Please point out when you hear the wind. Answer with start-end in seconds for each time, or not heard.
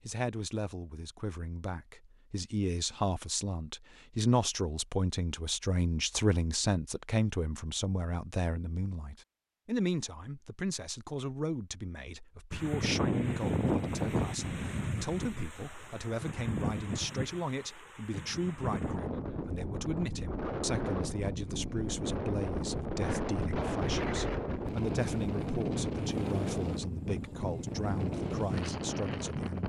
12.5-29.6.